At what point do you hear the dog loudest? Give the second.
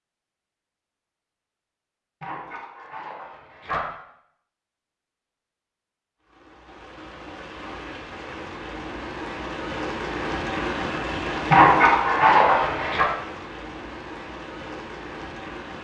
12 s.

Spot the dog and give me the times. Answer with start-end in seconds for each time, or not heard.
2.2-3.9, 11.5-13.1.